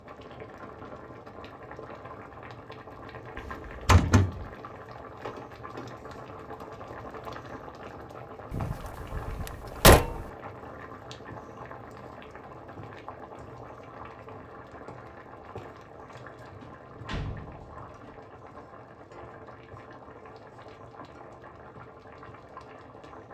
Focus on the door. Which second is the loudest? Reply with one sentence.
The loudest moment of the door is at 10 seconds.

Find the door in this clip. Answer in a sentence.
You can hear the door from 3.4 to 4.5 s, from 8.5 to 10.3 s and from 16.5 to 18.1 s.